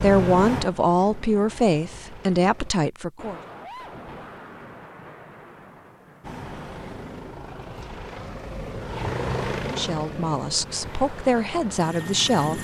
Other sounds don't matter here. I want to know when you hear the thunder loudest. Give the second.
4 s.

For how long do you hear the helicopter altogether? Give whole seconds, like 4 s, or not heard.
9 s.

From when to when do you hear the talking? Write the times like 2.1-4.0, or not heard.
0.0-3.4, 9.7-12.5.